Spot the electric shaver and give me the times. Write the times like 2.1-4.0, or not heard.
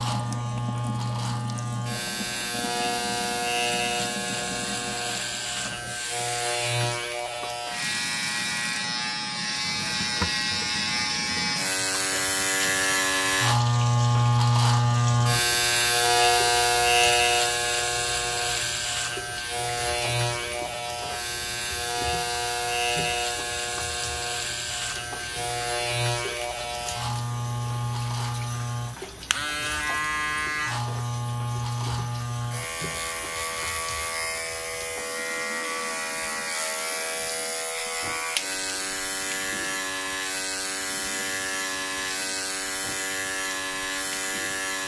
0.0-44.8.